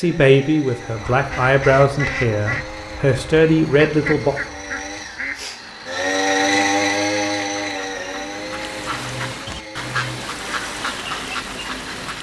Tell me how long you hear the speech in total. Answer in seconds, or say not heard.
4 s.